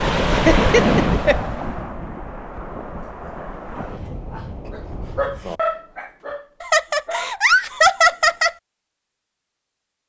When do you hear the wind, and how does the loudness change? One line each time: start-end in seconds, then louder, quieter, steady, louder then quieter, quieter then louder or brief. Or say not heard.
0.0-5.6 quieter.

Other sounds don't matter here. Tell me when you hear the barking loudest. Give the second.
6 s.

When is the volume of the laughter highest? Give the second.
8 s.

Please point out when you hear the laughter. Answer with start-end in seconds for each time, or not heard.
0.5-1.4, 6.6-8.6.